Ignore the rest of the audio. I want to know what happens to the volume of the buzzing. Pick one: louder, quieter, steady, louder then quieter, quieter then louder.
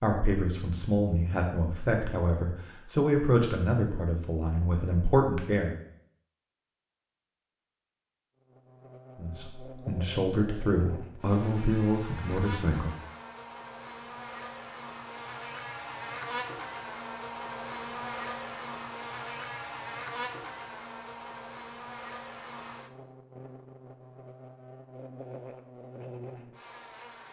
louder then quieter.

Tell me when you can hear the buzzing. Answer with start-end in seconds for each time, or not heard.
8.4-27.2.